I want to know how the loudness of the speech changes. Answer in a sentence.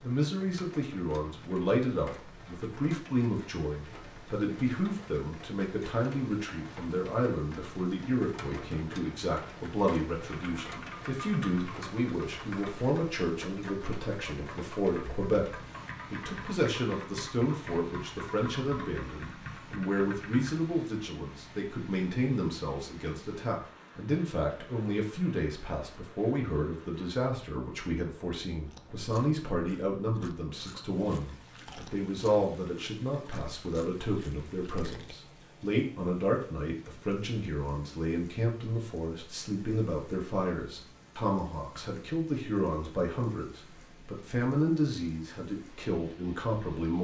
The loudness of the speech stays about the same.